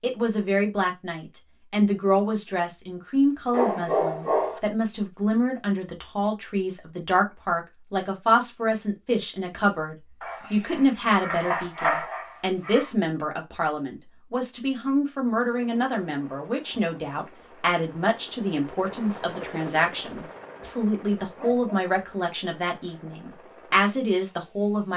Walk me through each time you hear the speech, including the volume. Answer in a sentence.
You can hear the speech from 0.0 to 24.9 s, at a steady volume.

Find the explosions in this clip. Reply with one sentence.
The explosions can't be heard in this clip.